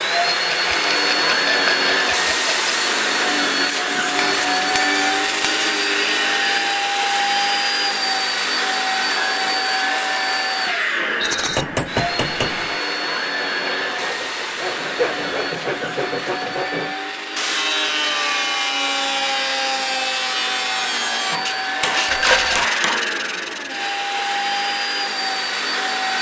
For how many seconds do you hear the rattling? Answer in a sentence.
You can hear the rattling for 4 seconds altogether.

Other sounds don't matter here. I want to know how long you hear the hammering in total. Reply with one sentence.
You can hear the hammering for 5 seconds altogether.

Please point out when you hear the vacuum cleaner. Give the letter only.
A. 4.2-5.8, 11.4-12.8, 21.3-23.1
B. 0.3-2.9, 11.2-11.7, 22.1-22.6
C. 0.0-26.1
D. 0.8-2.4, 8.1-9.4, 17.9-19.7
C.